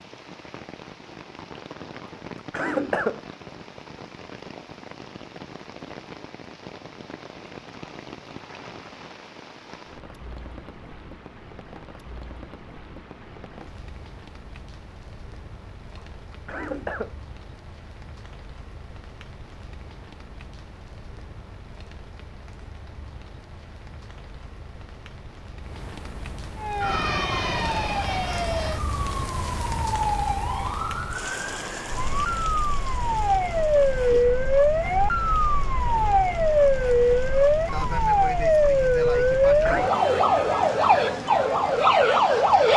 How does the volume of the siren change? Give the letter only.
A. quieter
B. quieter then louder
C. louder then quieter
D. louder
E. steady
D.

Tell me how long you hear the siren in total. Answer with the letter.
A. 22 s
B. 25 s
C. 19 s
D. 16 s
D.